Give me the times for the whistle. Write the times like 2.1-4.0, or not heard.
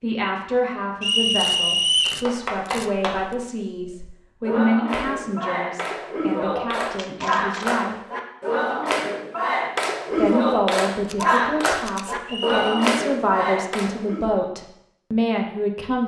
1.0-2.2, 12.2-12.8.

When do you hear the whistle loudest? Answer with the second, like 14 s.
2 s.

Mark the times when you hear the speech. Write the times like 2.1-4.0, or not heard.
0.0-8.0, 10.2-16.0.